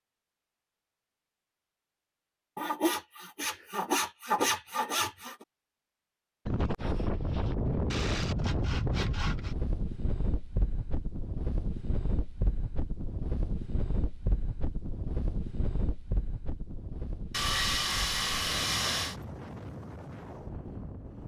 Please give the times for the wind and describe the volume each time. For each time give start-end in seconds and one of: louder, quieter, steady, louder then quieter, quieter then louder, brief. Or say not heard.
6.5-21.2 quieter.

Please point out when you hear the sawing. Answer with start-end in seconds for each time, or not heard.
2.5-5.5, 7.9-9.6, 17.3-19.1.